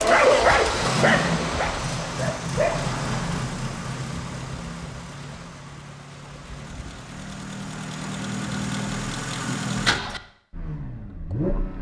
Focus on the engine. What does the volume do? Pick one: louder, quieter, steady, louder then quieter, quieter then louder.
quieter then louder.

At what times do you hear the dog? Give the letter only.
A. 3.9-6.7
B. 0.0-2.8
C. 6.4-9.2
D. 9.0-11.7
B.